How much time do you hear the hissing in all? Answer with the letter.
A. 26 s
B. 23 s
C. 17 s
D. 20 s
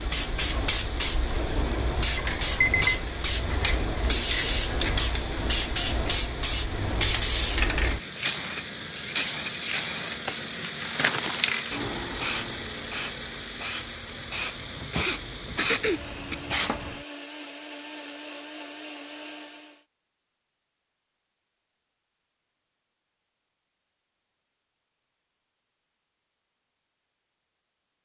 C.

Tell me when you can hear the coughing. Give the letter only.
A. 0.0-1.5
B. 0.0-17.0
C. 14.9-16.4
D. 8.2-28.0
C.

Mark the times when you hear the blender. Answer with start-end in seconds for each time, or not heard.
0.0-19.9.